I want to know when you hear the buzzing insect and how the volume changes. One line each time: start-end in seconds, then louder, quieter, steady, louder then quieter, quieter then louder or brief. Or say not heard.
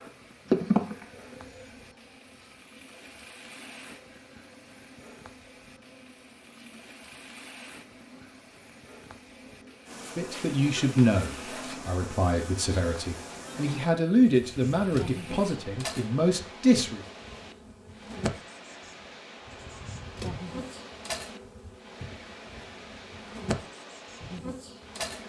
0.0-25.2 quieter then louder.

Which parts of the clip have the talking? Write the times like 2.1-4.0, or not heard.
10.2-17.0.